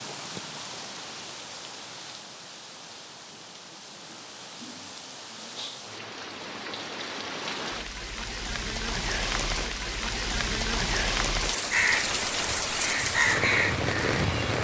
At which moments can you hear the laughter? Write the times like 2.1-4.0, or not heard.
not heard.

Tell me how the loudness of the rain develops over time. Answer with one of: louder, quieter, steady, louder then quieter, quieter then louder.
louder.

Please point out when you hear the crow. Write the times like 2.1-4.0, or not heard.
11.7-14.4.